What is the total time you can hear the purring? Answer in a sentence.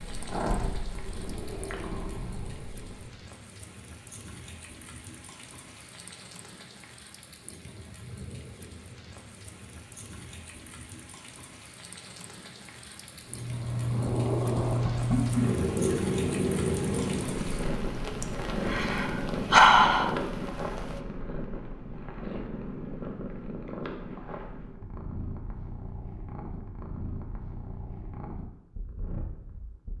The purring can be heard for 20 seconds in total.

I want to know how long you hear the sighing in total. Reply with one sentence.
You can hear the sighing for 2 seconds altogether.